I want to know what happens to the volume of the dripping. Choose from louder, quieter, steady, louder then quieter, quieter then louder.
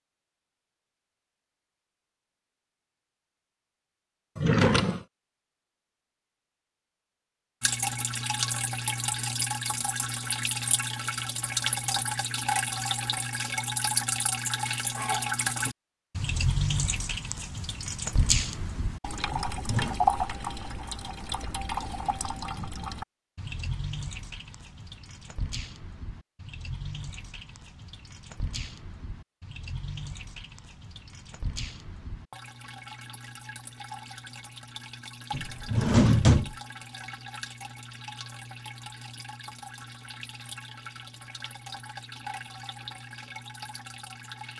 quieter.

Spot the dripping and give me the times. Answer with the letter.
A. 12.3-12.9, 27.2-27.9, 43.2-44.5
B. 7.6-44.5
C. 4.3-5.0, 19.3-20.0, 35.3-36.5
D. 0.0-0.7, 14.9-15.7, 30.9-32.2
B.